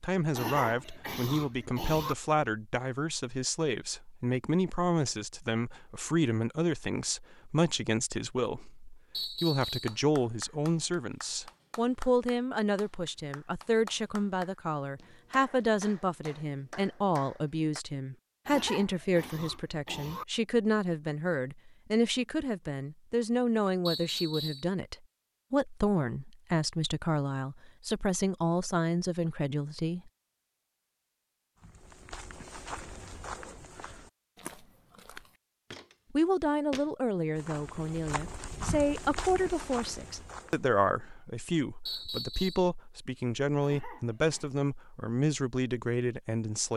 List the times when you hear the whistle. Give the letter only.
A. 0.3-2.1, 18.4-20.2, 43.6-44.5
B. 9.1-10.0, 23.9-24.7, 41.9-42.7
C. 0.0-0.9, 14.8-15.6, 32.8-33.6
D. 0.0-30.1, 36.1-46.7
B.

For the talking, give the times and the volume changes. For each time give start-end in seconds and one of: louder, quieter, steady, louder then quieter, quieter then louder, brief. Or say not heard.
0.0-30.1 steady
36.1-46.7 steady.